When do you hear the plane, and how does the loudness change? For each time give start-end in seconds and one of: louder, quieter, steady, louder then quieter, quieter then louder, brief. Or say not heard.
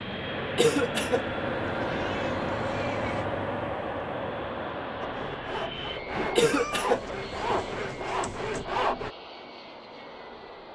0.0-10.6 quieter.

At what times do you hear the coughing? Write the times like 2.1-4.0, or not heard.
0.6-1.2, 6.3-7.0.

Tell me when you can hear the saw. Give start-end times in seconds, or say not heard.
5.0-9.1.